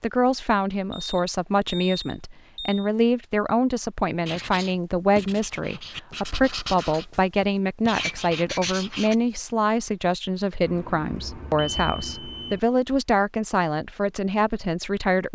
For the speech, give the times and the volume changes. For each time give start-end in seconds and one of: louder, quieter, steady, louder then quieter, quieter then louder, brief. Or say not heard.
0.0-15.3 steady.